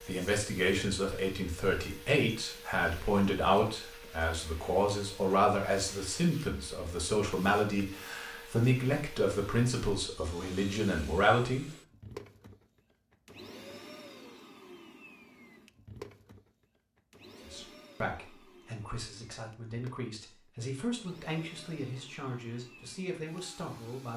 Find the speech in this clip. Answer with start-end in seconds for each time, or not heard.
0.1-11.7, 17.4-24.1.